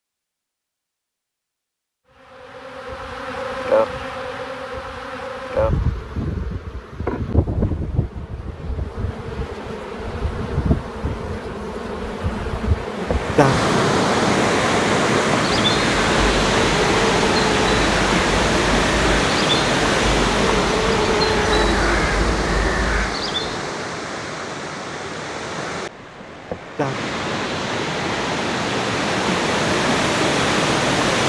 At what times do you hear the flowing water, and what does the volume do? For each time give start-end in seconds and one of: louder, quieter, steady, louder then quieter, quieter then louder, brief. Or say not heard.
12.8-31.2 quieter then louder.